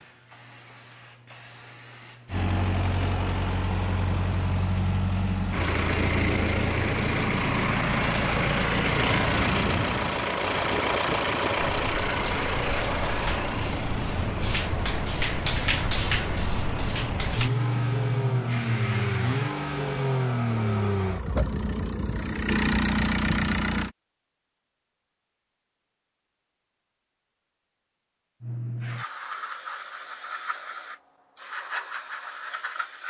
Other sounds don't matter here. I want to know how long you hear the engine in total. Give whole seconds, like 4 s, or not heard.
22 s.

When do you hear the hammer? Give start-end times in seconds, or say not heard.
not heard.